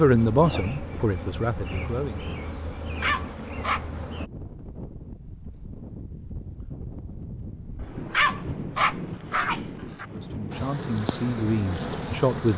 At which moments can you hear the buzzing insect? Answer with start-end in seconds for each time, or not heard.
0.0-4.3, 10.5-12.5.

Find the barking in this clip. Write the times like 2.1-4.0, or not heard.
2.8-4.0, 7.8-10.1.